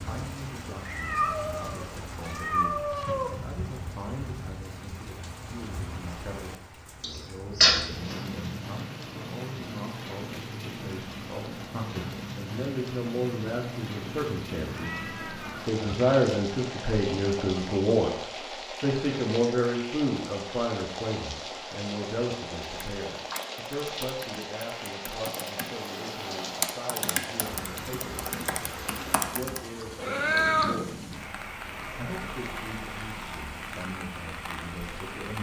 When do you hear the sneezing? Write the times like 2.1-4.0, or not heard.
7.0-8.2.